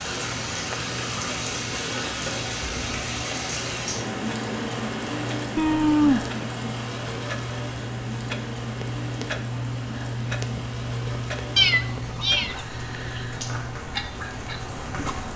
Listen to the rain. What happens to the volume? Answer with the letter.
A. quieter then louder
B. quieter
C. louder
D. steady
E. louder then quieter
B.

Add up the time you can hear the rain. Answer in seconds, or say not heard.
15 s.